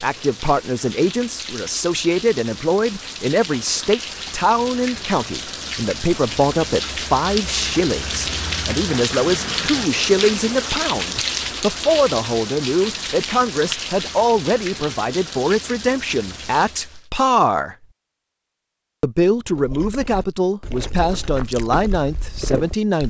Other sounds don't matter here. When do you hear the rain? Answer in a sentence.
The rain can be heard from 0.0 to 17.1 s.